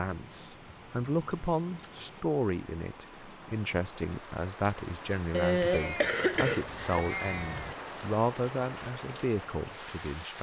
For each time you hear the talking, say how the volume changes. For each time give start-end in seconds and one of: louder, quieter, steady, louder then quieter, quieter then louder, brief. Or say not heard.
0.0-10.3 steady.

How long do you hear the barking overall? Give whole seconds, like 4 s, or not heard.
not heard.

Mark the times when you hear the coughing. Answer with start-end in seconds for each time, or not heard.
5.3-6.8.